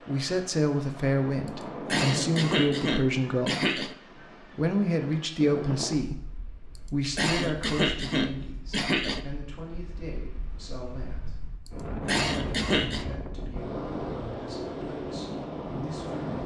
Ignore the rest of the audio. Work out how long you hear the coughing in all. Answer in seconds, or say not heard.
5 s.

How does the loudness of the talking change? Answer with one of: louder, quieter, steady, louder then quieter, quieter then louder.
quieter.